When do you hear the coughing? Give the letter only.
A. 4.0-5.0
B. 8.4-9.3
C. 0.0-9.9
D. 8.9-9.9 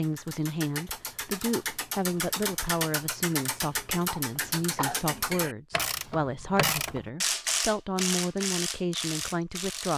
A.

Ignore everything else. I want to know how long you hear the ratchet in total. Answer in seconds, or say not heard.
10 s.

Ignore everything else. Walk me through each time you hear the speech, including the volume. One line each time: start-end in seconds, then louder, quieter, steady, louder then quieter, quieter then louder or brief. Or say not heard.
0.0-9.9 steady.